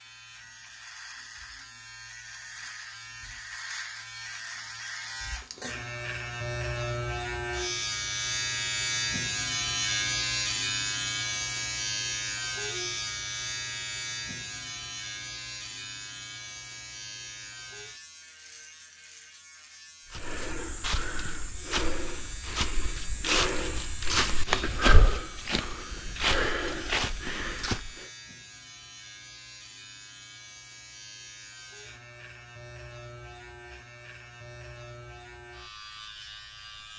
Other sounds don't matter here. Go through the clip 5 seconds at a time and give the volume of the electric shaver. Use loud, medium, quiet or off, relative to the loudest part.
medium, loud, loud, medium, quiet, quiet, quiet, quiet.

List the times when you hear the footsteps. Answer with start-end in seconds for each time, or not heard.
20.1-28.1.